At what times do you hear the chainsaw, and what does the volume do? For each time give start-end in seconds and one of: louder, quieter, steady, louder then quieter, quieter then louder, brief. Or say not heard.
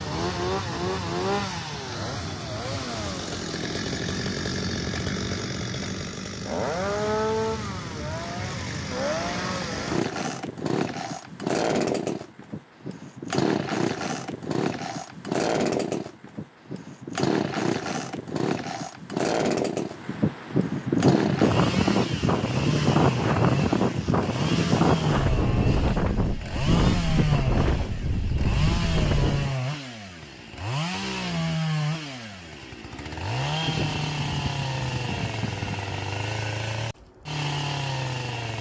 0.0-38.5 steady.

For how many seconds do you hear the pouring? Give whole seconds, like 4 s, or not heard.
2 s.